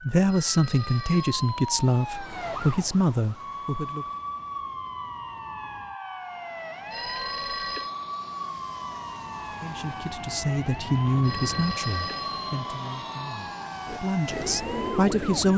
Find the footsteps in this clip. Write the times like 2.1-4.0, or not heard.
not heard.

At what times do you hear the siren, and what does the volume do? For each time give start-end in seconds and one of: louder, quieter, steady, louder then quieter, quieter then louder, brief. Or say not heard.
0.0-15.5 steady.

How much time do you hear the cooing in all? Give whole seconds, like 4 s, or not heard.
2 s.